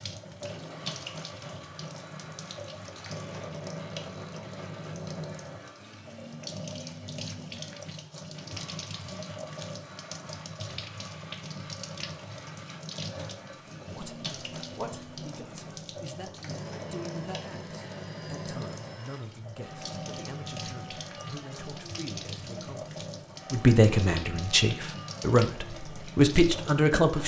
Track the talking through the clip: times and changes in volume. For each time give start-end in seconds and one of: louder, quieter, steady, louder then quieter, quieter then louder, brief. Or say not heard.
13.4-27.2 louder.